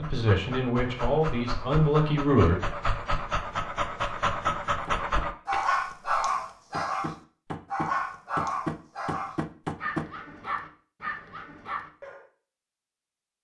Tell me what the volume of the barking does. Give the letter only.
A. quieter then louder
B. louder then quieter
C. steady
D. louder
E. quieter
B.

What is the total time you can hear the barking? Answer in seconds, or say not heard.
12 s.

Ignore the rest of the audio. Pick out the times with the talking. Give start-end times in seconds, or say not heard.
0.0-2.5.